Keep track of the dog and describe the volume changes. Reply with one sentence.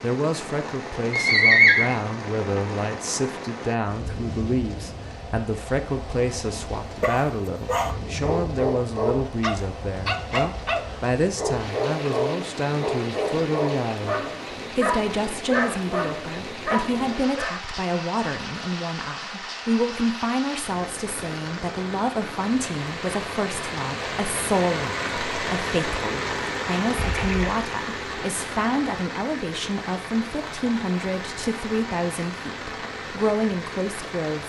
The loudness of the dog stays about the same.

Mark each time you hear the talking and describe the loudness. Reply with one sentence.
You can hear the talking from 0.0 to 34.4 s, at a steady volume.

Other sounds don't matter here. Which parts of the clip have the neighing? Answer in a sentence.
You can hear the neighing from 1.1 to 1.9 s and from 26.9 to 27.6 s.